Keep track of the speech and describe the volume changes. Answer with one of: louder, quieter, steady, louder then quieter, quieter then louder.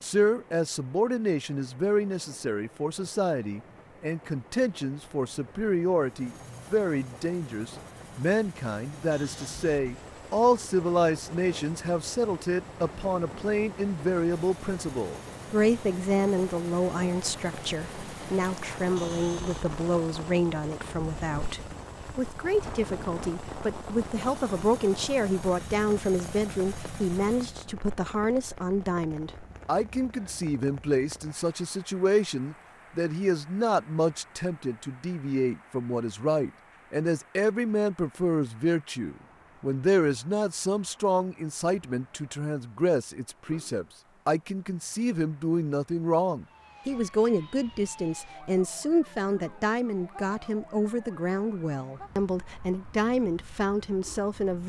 steady.